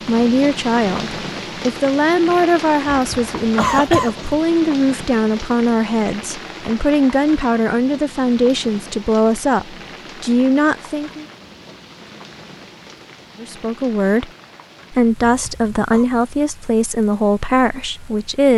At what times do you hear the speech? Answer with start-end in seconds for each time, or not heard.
0.1-11.2, 13.4-14.3, 14.9-18.5.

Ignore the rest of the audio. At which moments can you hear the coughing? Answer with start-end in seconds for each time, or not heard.
2.9-4.5, 15.2-16.1.